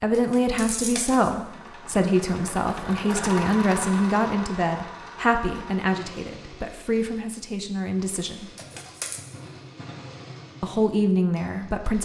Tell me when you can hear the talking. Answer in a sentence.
You can hear the talking from 0.0 to 8.5 s and from 10.6 to 12.0 s.